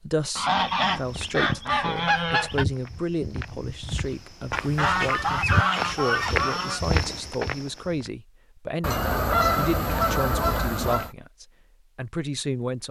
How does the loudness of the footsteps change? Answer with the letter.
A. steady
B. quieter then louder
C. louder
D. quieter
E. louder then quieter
C.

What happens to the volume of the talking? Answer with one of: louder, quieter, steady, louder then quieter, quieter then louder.
steady.